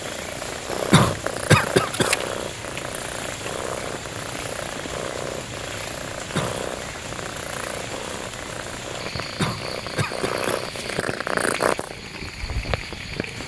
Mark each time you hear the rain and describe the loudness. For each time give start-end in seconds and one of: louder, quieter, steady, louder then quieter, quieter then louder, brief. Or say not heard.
0.0-13.4 steady.